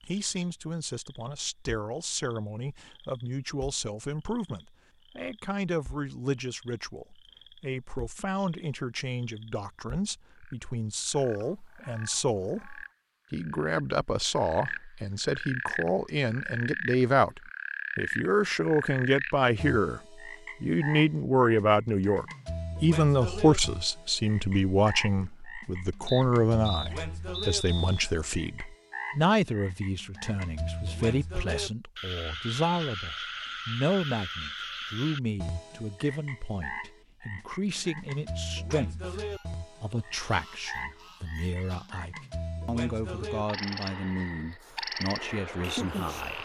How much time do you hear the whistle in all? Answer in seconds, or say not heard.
2 s.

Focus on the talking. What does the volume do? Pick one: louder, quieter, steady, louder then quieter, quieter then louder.
louder then quieter.